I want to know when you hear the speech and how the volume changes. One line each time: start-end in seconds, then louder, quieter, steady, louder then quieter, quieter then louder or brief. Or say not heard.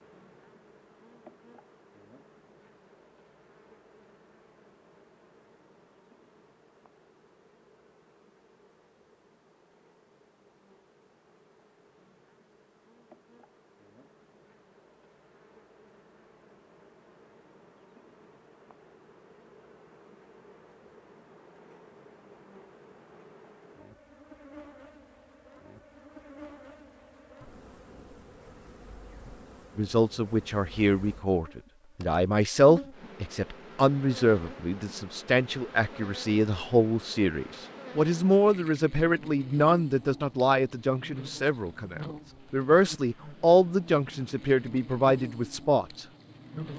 29.8-46.6 steady.